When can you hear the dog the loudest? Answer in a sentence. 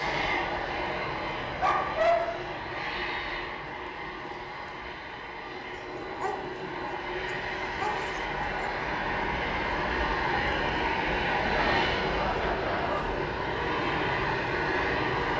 The volume of the dog peaks at 2 seconds.